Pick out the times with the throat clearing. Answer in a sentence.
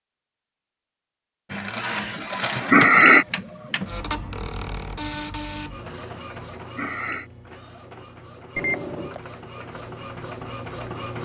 You can hear the throat clearing from 1.8 to 3.2 s and from 5.8 to 7.3 s.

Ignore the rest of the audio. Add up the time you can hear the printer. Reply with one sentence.
The printer can be heard for 10 seconds in total.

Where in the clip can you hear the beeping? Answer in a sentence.
The beeping can be heard from 8.6 to 9.2 s.